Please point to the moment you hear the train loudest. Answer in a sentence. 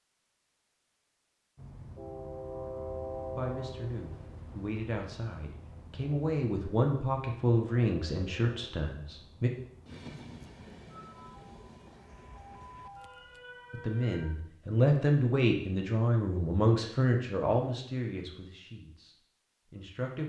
The loudest moment of the train is at 3 seconds.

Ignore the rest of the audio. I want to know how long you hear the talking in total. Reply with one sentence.
The talking can be heard for 13 seconds in total.